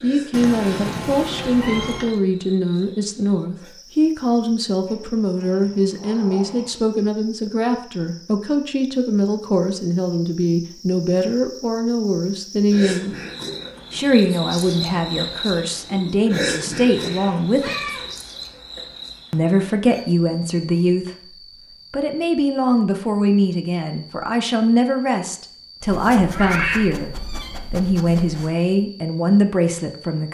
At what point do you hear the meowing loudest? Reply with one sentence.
The loudest moment of the meowing is at 27 seconds.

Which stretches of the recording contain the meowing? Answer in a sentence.
The meowing can be heard from 0.3 to 2.1 s, from 16.9 to 18.1 s and from 26.2 to 27.6 s.